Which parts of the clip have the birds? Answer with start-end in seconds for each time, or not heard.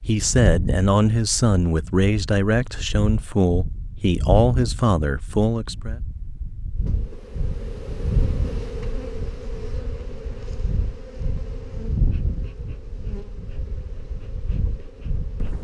not heard.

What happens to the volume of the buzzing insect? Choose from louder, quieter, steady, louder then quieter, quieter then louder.
quieter.